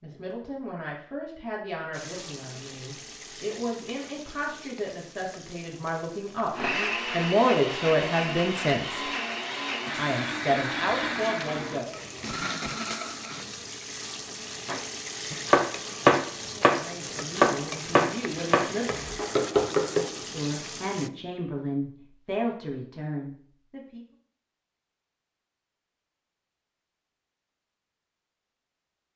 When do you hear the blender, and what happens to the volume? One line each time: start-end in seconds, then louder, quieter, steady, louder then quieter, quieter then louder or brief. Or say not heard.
6.5-13.6 steady.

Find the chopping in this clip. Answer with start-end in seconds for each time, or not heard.
14.7-20.1.